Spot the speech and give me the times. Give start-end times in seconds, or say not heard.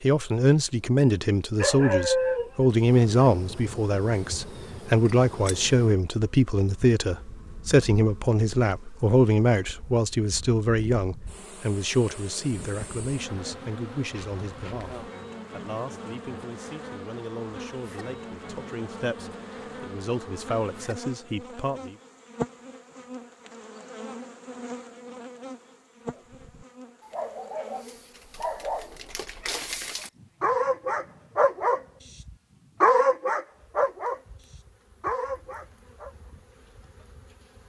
0.0-21.9.